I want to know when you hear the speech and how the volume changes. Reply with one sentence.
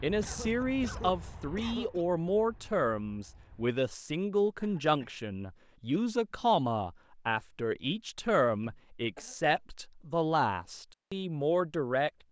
You can hear the speech from 0.0 to 12.1 s, at a steady volume.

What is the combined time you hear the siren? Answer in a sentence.
The siren can't be heard in this clip.